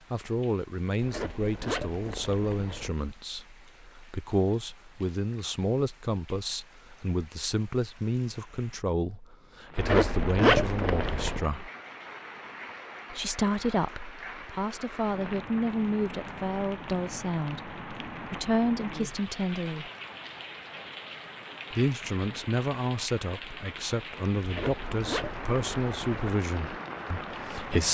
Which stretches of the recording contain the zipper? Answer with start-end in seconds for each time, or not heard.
1.0-2.9, 9.8-11.4, 24.4-26.2.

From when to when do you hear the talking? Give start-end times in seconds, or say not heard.
0.1-11.7, 13.1-19.9, 21.7-27.8.